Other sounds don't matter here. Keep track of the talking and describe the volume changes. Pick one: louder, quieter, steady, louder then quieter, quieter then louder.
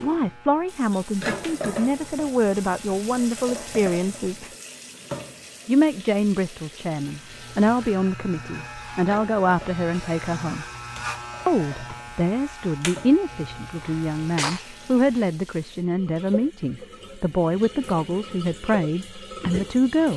steady.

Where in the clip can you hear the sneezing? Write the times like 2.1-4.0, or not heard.
13.8-14.8.